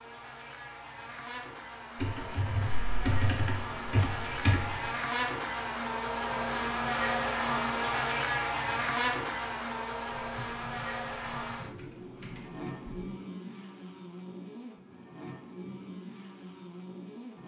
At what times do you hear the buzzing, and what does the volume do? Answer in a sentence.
The buzzing can be heard from 0.0 to 17.4 s, getting louder then quieter.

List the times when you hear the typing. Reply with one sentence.
You can hear the typing from 1.9 to 4.9 s and from 10.2 to 13.1 s.